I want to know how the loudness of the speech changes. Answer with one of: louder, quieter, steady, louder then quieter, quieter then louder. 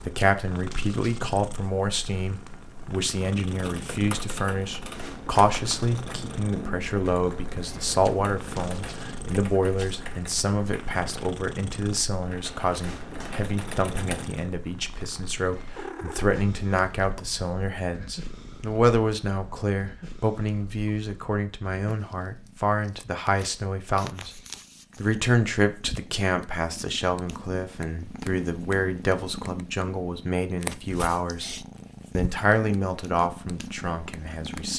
steady.